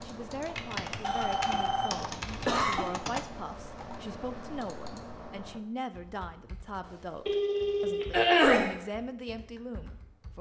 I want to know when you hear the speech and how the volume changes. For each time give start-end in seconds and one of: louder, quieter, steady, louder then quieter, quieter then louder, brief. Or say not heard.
0.0-10.3 steady.